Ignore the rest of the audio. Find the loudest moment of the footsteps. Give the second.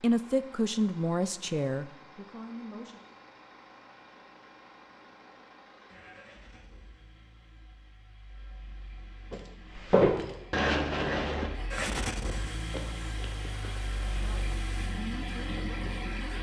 10 s.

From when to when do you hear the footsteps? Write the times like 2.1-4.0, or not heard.
9.3-14.4.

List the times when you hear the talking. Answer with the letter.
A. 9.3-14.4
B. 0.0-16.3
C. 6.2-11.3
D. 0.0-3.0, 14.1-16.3
D.